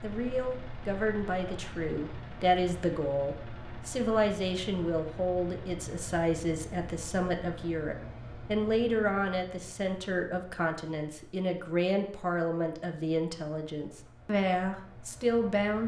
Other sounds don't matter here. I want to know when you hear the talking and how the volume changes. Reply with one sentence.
You can hear the talking from 0.0 to 15.8 s, at a steady volume.